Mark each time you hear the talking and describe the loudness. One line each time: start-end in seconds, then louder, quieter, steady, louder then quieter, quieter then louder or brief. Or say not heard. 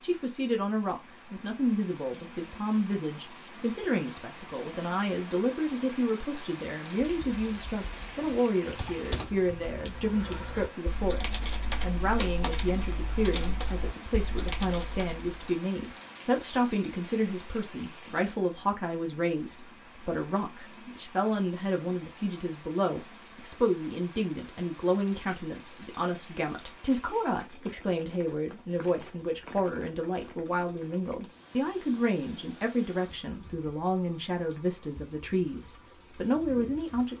0.0-37.1 steady.